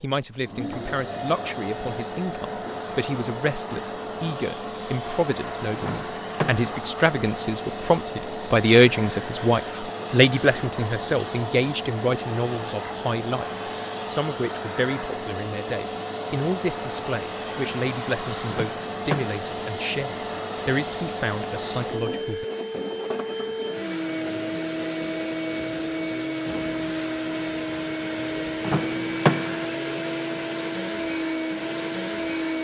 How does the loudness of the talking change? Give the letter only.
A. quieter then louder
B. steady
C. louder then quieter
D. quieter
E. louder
C.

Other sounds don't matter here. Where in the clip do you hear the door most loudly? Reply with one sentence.
The volume of the door peaks at 29 seconds.